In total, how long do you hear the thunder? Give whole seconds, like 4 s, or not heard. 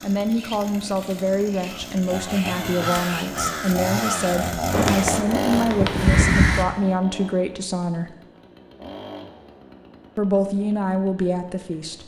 2 s.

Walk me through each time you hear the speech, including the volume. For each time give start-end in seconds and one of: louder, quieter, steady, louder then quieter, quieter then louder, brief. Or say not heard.
0.0-8.2 steady
10.2-12.0 brief.